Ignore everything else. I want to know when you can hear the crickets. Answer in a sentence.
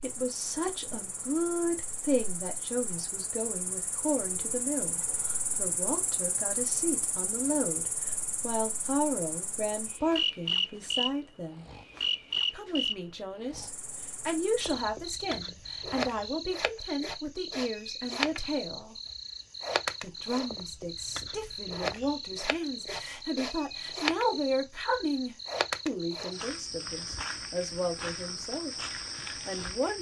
The crickets can be heard from 0.0 to 29.9 s.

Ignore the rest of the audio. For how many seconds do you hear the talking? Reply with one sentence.
The talking can be heard for 28 seconds in total.